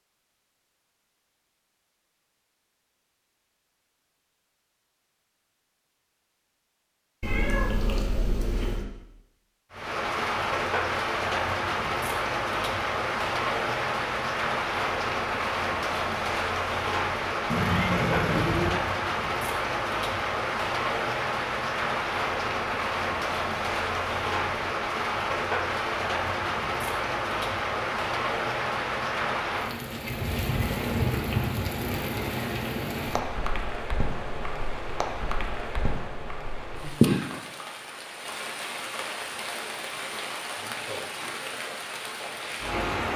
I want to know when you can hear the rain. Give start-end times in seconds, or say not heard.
9.7-43.1.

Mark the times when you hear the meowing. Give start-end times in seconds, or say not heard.
7.2-8.8, 17.5-18.8, 30.8-31.4.